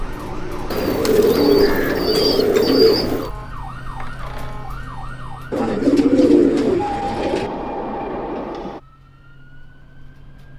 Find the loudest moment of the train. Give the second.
7 s.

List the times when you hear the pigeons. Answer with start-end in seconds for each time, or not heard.
0.7-3.3, 5.5-7.5.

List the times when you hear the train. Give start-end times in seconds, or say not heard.
0.0-1.6, 6.8-8.8.